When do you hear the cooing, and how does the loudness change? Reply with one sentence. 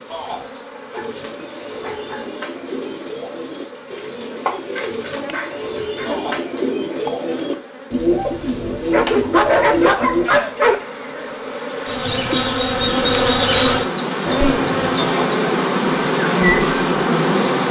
You can hear the cooing from 0.9 to 10.3 s, getting louder.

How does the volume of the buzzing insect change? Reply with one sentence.
The volume of the buzzing insect goes up.